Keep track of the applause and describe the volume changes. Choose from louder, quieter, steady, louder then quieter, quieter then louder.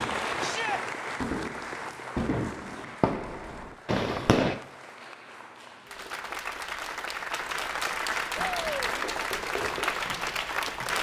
quieter then louder.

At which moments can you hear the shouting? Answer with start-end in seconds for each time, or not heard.
0.4-0.8, 8.3-8.9.